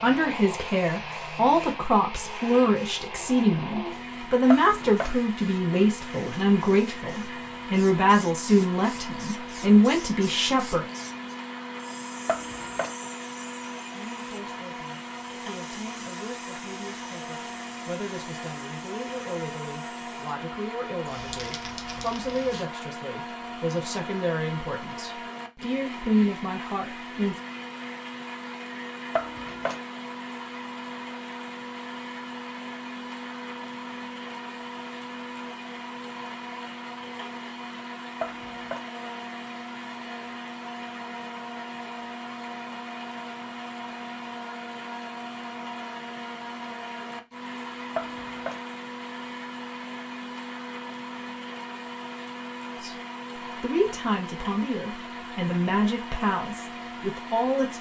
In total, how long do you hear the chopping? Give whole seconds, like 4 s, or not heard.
3 s.